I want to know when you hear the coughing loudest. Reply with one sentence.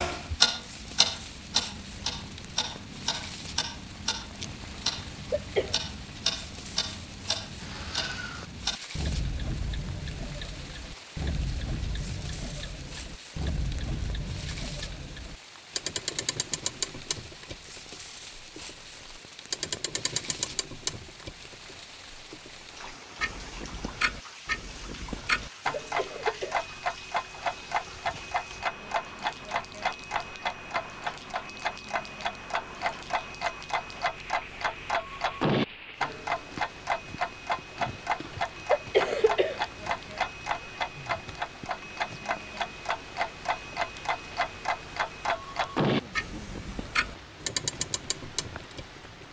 The loudest moment of the coughing is at 39 seconds.